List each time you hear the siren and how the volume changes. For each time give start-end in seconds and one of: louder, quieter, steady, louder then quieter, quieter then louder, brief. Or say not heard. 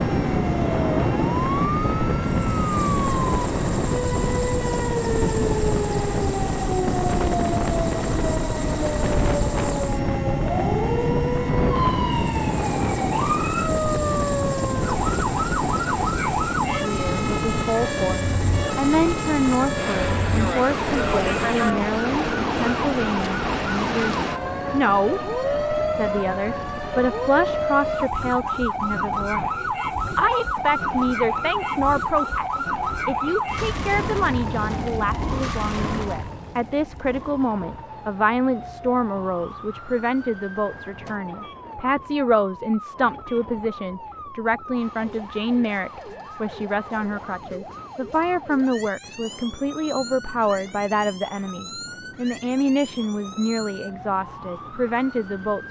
0.0-55.6 quieter.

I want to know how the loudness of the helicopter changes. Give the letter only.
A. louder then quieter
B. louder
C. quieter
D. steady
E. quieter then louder
D.